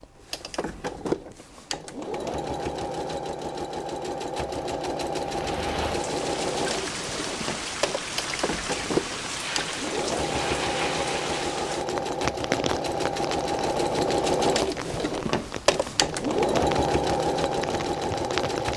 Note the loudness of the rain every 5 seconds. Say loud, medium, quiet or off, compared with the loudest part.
off, loud, loud, loud.